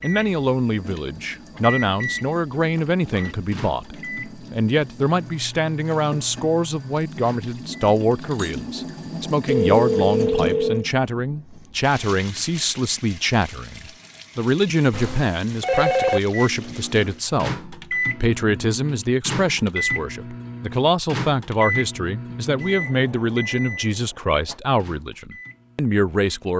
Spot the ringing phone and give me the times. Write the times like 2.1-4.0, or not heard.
8.6-10.9, 14.9-16.2.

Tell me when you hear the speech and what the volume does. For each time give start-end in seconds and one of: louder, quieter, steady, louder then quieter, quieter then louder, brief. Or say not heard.
0.0-26.5 steady.